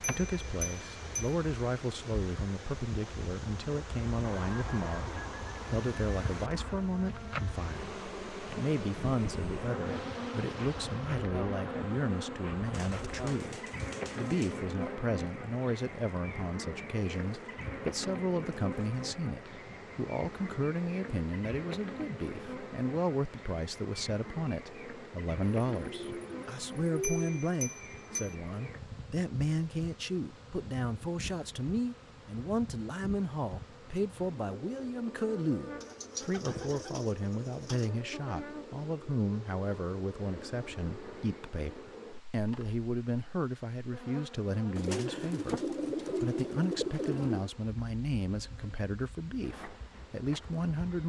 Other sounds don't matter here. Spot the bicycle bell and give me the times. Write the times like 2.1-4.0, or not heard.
0.0-1.4, 27.0-28.4.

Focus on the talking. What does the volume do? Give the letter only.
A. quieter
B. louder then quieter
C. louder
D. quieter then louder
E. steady
E.